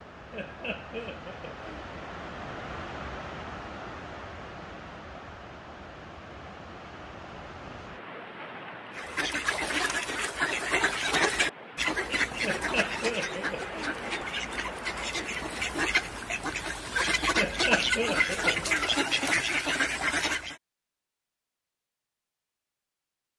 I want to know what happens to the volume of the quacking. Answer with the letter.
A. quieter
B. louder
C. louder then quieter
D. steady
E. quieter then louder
E.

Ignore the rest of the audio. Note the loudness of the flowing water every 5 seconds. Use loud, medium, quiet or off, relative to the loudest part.
loud, loud, loud, loud, off.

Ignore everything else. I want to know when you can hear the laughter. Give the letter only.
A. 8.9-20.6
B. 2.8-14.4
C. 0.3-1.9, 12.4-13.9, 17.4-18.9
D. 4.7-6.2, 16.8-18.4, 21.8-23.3
C.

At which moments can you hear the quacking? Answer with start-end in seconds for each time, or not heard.
8.9-20.6.